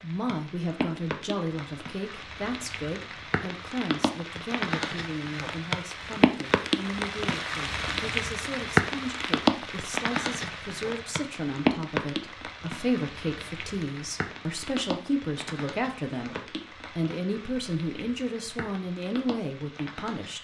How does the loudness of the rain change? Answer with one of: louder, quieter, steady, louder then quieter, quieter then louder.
louder then quieter.